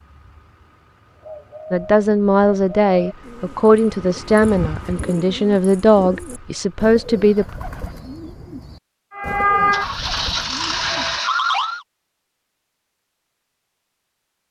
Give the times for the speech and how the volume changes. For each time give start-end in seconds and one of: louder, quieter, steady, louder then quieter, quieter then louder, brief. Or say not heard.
1.7-7.5 steady.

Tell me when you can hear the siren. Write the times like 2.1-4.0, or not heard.
9.1-11.8.